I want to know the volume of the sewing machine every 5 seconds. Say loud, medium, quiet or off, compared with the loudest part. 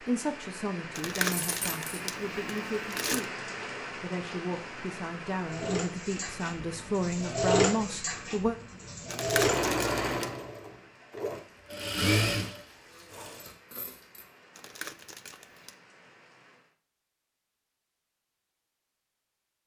off, loud, loud, off.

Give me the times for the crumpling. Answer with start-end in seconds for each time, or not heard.
0.9-3.2, 9.1-10.3, 14.6-15.8.